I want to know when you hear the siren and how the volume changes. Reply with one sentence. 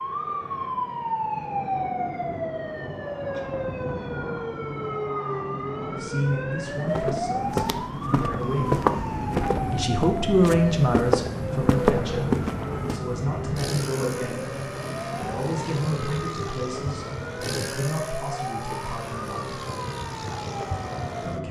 You can hear the siren from 0.0 to 21.4 s, getting quieter.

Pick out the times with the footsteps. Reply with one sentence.
You can hear the footsteps from 6.6 to 13.0 s.